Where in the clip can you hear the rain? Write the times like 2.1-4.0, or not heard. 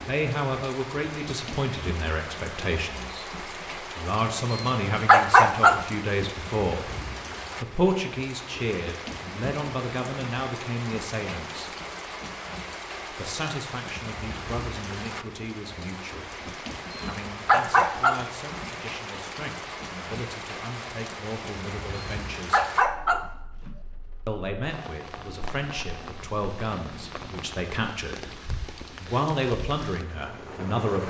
0.0-31.0.